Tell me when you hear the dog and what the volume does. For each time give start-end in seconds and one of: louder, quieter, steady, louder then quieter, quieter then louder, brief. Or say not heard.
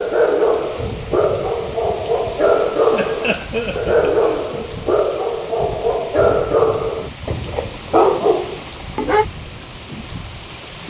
0.0-9.2 steady.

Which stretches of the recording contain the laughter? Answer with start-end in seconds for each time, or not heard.
2.9-4.5.